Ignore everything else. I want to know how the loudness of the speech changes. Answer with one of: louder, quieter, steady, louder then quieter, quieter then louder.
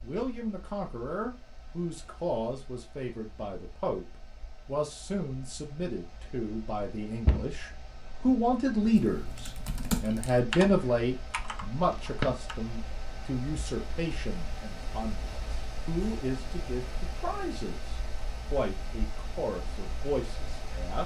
louder then quieter.